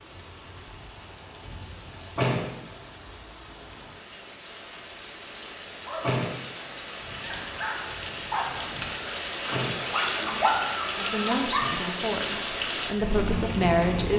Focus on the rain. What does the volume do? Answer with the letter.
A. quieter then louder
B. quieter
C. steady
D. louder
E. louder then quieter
D.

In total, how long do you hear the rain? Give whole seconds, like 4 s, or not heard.
14 s.